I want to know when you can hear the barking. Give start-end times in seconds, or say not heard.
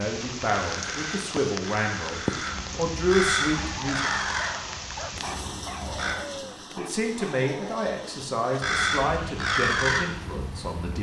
3.5-8.6.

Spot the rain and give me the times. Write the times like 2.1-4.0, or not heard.
0.0-10.9.